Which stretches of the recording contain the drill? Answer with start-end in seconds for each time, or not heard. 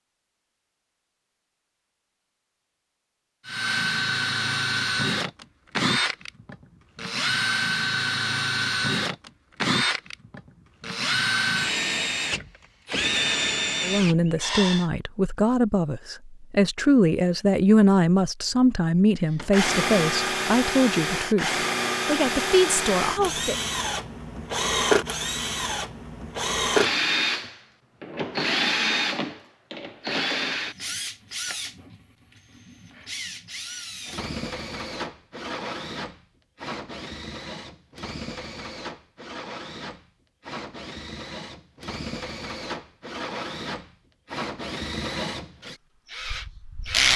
3.5-14.9, 19.4-47.1.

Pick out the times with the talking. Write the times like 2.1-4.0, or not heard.
13.8-23.6.